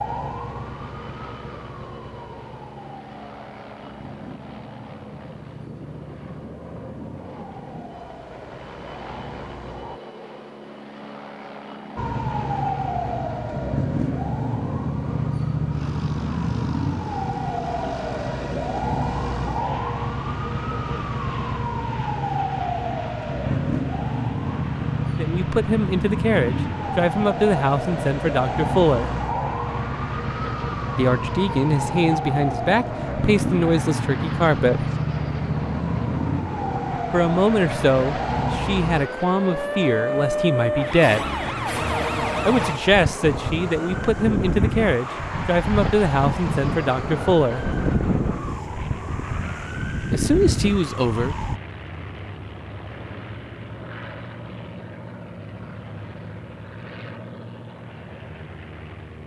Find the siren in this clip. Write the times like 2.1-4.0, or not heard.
0.0-10.0, 11.9-51.6.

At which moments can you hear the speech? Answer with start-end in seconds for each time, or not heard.
25.1-29.1, 30.9-34.9, 37.1-41.2, 42.5-47.6, 50.1-51.4.